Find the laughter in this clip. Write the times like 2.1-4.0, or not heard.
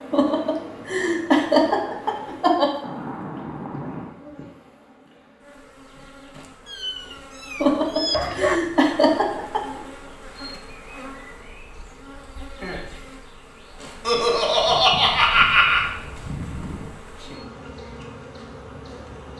0.1-2.7, 7.6-9.8, 14.1-15.9.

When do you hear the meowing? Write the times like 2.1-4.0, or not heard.
2.8-4.2, 6.7-8.6, 14.7-17.0.